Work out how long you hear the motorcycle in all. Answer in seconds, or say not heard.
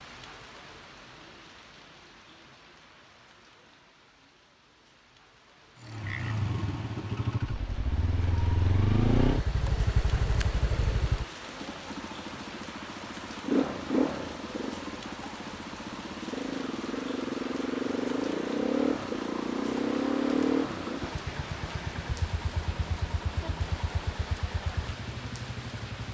20 s.